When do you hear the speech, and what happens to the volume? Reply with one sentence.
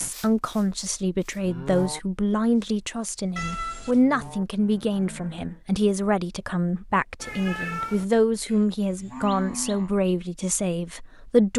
You can hear the speech from 0.0 to 11.5 s, at a steady volume.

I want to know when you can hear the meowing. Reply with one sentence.
You can hear the meowing from 3.4 to 4.0 s and from 7.2 to 8.1 s.